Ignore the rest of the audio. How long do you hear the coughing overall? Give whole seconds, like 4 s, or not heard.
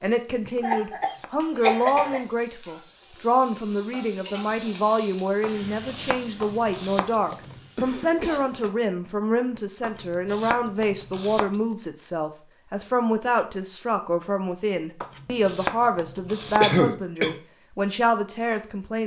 4 s.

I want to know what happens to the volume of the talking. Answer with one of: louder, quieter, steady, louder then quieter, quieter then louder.
steady.